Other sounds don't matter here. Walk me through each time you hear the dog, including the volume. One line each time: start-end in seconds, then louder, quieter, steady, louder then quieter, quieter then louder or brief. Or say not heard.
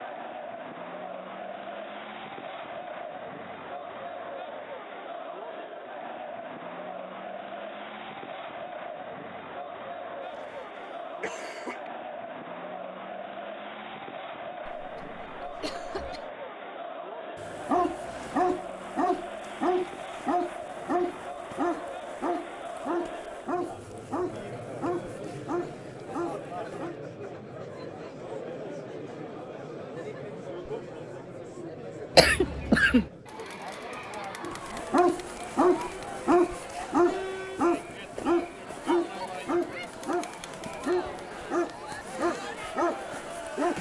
17.4-26.9 quieter
34.4-43.7 quieter.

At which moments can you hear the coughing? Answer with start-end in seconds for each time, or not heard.
10.2-11.9, 14.7-16.2, 32.1-33.0.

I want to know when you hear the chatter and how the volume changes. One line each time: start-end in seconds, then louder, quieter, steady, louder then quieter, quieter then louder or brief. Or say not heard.
0.0-43.7 steady.